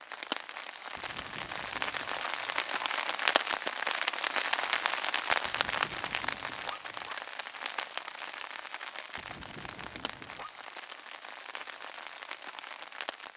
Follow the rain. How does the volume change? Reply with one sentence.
The volume of the rain goes up, then down.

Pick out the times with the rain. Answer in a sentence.
You can hear the rain from 0.0 to 13.3 s.